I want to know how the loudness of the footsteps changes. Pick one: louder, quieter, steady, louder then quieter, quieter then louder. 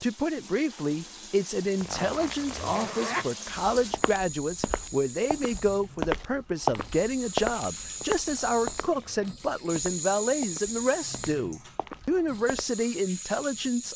louder then quieter.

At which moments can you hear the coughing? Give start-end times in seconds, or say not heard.
not heard.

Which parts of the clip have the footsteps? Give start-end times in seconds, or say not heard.
3.7-12.7.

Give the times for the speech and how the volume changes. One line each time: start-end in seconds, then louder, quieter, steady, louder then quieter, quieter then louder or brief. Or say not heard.
0.0-13.9 steady.